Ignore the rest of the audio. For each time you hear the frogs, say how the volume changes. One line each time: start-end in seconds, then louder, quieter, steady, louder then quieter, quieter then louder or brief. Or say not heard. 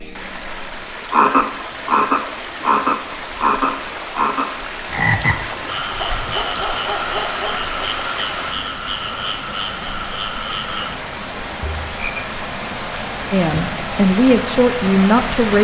0.0-12.2 quieter.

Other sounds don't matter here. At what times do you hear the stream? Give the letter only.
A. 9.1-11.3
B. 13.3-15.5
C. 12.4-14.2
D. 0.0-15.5
D.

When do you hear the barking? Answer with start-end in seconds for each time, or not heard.
6.0-7.8.